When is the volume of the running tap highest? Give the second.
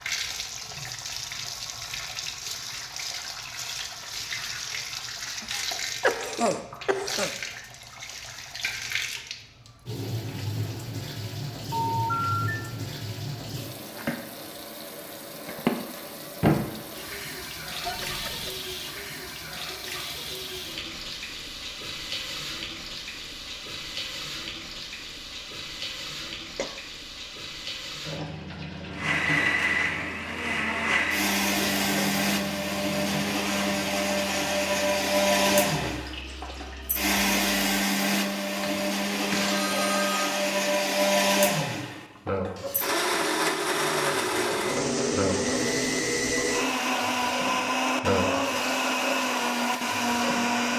16 s.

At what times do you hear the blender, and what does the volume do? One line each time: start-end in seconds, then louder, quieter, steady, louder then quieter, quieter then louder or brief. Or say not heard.
28.9-50.7 steady.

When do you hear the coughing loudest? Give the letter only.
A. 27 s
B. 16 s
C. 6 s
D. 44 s
C.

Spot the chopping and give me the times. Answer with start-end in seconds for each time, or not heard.
not heard.